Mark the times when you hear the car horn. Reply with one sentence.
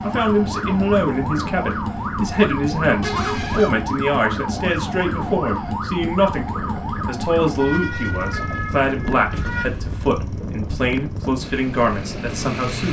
You can hear the car horn from 3.0 to 3.8 s and from 9.3 to 9.9 s.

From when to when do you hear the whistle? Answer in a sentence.
The whistle can't be heard in this clip.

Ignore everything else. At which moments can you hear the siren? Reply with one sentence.
The siren can be heard from 0.0 to 9.7 s.